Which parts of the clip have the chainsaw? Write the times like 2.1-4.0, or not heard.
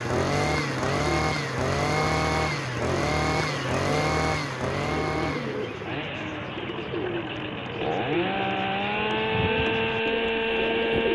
0.0-11.1.